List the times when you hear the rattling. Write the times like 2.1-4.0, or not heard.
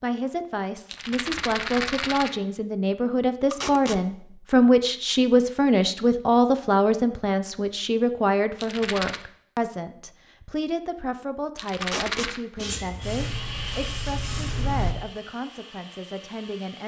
0.8-2.4, 8.6-9.2, 11.6-12.4.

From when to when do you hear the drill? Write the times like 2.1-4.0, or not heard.
12.9-16.8.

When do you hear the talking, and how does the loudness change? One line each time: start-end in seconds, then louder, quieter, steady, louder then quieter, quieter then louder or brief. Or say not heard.
0.0-16.8 louder then quieter.